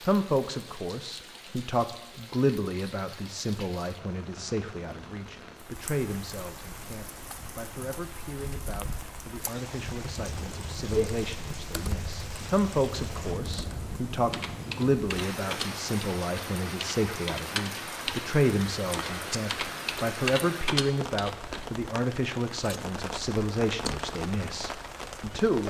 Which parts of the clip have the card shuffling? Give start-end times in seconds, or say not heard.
not heard.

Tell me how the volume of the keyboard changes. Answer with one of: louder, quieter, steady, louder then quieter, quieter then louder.
louder.